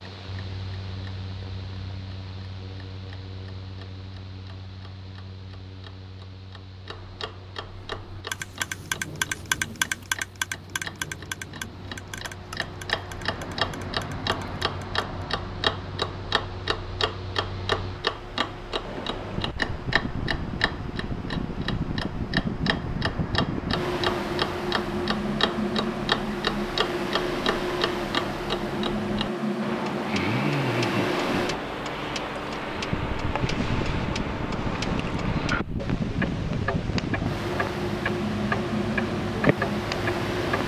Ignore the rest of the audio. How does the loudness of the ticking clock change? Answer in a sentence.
The volume of the ticking clock goes up.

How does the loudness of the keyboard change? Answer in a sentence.
The volume of the keyboard goes down.